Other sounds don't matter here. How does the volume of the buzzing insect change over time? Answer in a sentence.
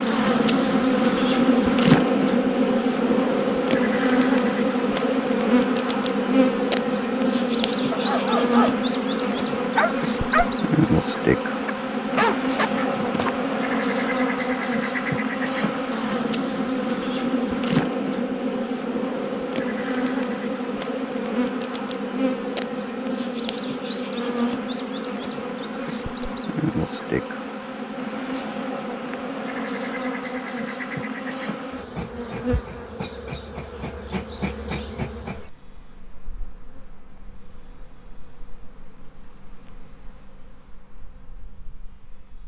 The loudness of the buzzing insect goes down.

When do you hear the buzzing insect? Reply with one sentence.
The buzzing insect can be heard from 0.0 to 42.4 s.